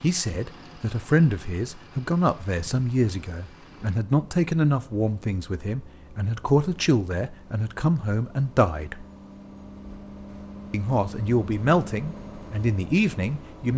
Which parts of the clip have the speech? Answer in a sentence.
You can hear the speech from 0.0 to 9.1 s and from 10.7 to 13.7 s.